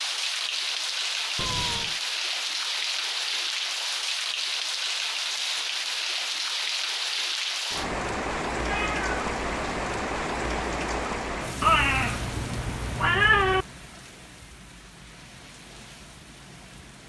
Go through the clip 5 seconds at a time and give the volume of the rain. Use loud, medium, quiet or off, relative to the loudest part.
loud, loud, medium, quiet.